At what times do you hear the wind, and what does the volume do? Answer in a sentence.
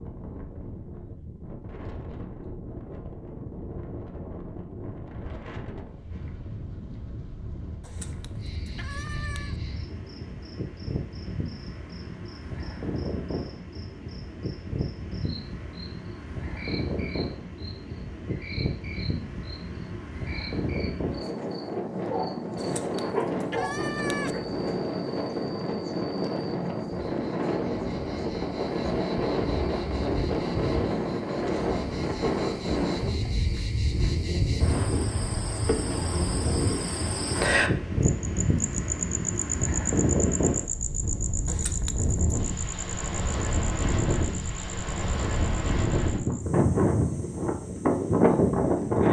You can hear the wind from 0.0 to 49.0 s, getting louder.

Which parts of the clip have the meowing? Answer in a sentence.
You can hear the meowing from 7.8 to 9.6 s, from 22.6 to 24.4 s and from 41.5 to 42.4 s.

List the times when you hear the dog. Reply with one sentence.
You can hear the dog from 23.1 to 24.4 s.